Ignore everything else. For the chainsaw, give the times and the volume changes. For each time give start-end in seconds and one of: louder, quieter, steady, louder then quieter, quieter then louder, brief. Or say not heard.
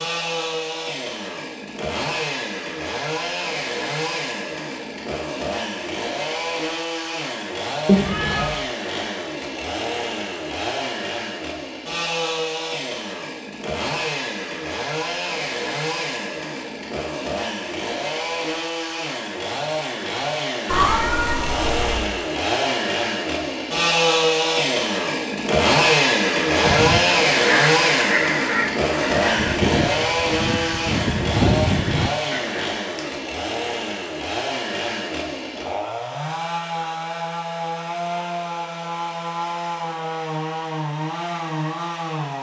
0.0-42.3 louder then quieter.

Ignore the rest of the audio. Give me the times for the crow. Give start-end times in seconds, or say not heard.
26.6-32.6.